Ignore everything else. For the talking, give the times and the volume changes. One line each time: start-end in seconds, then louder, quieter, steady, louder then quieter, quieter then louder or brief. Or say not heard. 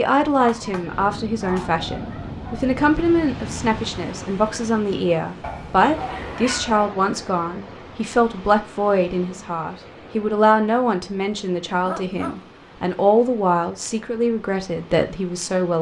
0.0-15.7 steady.